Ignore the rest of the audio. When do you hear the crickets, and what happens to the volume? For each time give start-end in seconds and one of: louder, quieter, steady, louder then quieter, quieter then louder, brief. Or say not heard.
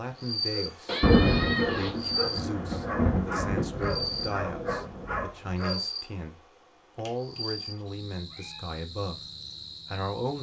0.0-10.3 quieter.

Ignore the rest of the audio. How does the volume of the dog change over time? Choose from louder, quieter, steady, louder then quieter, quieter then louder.
steady.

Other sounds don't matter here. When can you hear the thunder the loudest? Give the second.
1 s.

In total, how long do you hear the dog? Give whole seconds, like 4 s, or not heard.
5 s.